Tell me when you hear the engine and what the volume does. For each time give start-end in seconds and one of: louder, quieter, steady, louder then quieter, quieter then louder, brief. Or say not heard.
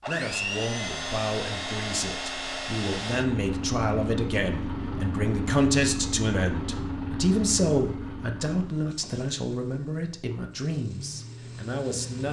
0.0-12.2 quieter.